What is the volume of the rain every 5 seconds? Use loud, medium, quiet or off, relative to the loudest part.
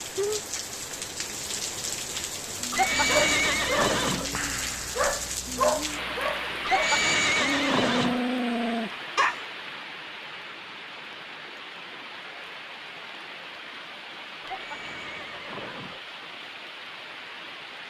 loud, loud, medium, medium.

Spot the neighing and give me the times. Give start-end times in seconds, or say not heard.
2.7-4.3, 6.7-8.2, 14.4-16.0.